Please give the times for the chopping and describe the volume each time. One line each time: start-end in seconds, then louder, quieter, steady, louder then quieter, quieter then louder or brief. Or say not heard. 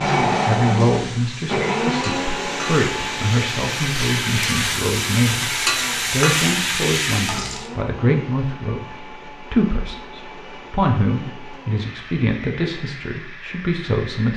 not heard.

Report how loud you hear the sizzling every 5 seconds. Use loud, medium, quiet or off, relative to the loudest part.
medium, loud, off.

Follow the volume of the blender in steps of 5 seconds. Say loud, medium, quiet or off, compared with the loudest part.
loud, quiet, quiet.